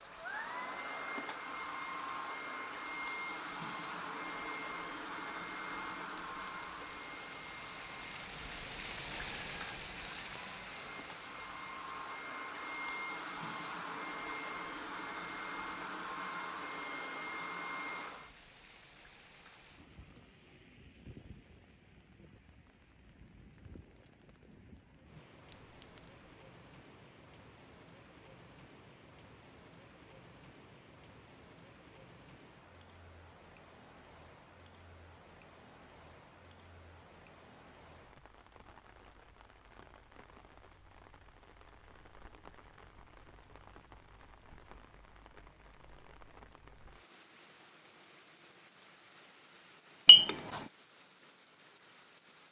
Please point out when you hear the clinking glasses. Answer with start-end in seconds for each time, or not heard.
6.2-6.7, 25.5-26.2, 50.0-50.6.